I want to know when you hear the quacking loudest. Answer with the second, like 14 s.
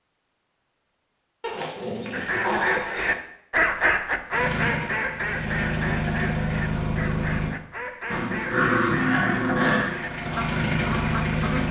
4 s.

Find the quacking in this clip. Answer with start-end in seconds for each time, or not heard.
2.1-11.6.